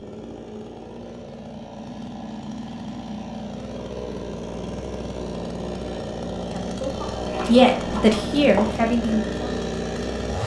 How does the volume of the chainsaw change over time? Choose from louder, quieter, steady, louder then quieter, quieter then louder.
louder.